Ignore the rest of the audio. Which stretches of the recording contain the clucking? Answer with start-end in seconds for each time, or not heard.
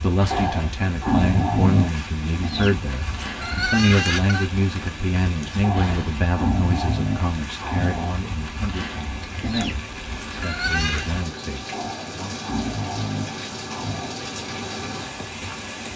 2.3-4.5, 9.3-11.1.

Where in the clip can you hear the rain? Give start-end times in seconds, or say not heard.
0.0-15.9.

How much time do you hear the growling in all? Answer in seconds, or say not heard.
7 s.